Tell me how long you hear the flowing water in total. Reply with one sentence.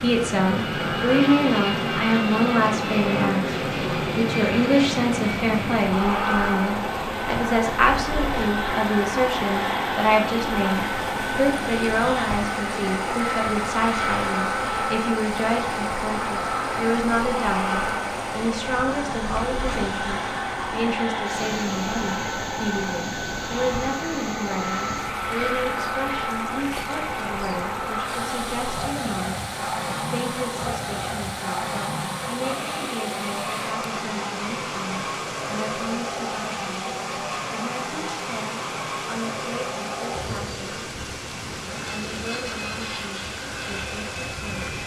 The flowing water can be heard for 45 seconds in total.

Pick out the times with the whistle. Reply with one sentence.
The whistle can't be heard in this clip.